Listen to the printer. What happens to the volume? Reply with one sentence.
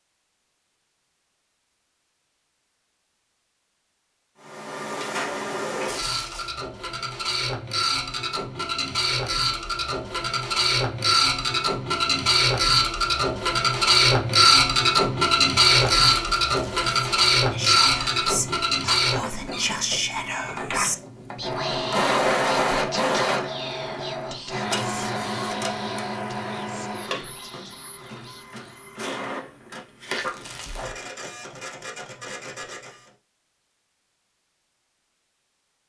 The volume of the printer goes up, then down.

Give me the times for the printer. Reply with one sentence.
The printer can be heard from 4.4 to 33.1 s.